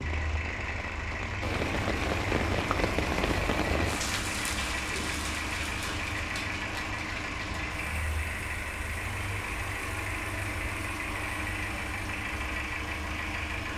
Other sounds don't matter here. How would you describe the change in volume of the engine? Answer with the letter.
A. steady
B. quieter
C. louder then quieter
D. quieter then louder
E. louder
A.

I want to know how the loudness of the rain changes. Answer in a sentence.
The volume of the rain goes down.